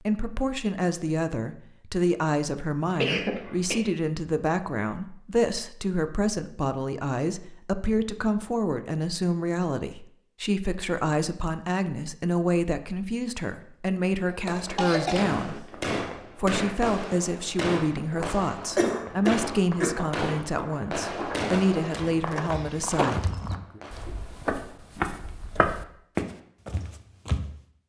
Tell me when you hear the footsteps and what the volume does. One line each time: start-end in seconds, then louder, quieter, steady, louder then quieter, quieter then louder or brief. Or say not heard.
18.0-27.5 louder.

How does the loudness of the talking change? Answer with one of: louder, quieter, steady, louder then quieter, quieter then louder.
steady.